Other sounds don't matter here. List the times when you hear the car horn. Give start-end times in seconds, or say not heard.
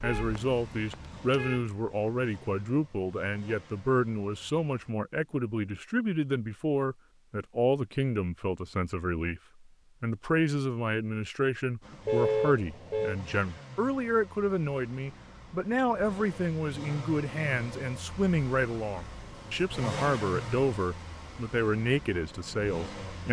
0.0-1.7, 12.1-13.2.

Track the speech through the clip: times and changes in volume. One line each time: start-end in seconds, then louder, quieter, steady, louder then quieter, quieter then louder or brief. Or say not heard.
0.0-9.4 steady
10.0-23.2 steady.